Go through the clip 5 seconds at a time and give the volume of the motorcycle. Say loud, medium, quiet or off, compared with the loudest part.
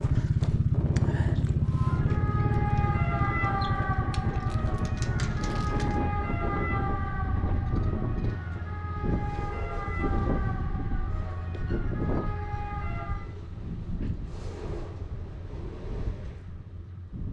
loud, medium, quiet, quiet.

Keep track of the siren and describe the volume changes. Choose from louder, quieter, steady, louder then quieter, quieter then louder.
quieter.